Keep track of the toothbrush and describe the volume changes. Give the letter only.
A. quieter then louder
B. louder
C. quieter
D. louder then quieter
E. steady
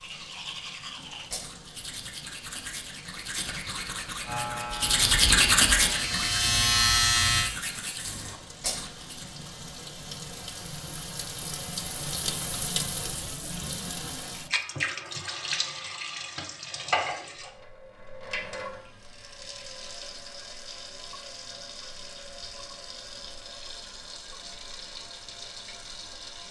D.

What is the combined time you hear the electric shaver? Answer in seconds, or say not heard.
3 s.